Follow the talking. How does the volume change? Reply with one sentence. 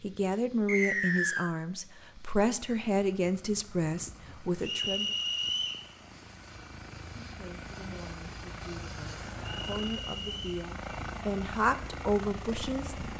The loudness of the talking goes down, then up.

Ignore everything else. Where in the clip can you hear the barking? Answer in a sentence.
You can't hear the barking here.